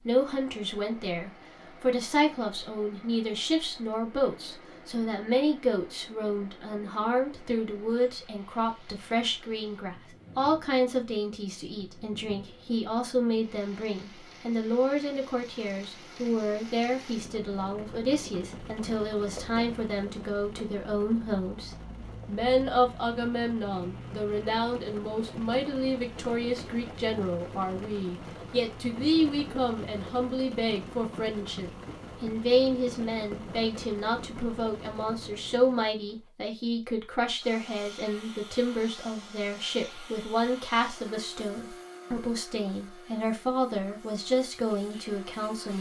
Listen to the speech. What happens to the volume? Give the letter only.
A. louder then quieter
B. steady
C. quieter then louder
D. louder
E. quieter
B.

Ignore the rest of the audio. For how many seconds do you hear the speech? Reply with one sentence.
You can hear the speech for 46 seconds altogether.